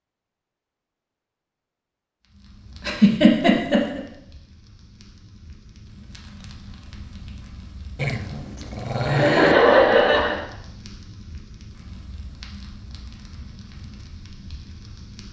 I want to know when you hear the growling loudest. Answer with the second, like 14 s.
9 s.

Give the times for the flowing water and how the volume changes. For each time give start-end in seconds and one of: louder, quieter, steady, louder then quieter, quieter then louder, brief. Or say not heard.
not heard.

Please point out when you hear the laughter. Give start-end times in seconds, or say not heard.
2.8-4.0, 9.1-10.4.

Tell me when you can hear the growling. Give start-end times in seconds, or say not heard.
8.0-9.6.